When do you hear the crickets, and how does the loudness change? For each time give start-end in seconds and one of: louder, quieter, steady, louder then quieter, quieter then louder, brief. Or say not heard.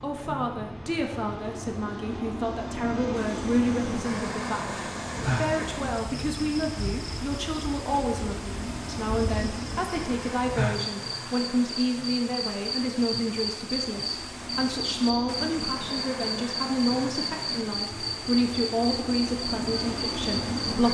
5.0-20.8 louder.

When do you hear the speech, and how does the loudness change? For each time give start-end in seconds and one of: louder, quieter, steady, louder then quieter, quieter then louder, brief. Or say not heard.
0.0-20.8 steady.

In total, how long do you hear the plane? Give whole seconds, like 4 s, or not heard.
21 s.